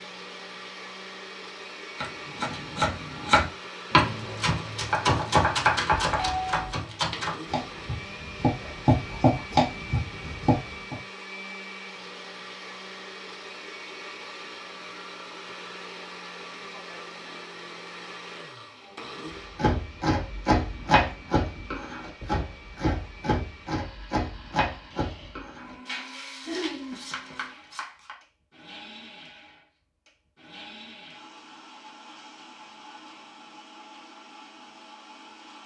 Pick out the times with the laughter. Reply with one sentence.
You can hear the laughter from 26.4 to 27.0 s.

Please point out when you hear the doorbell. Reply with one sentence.
The doorbell can be heard from 5.9 to 6.8 s.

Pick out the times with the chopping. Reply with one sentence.
The chopping can be heard from 2.0 to 10.9 s and from 19.6 to 28.1 s.